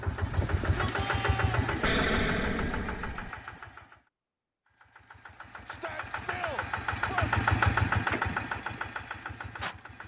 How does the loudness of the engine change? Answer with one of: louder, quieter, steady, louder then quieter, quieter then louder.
quieter then louder.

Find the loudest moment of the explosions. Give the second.
2 s.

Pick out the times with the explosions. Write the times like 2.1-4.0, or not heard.
1.8-3.3.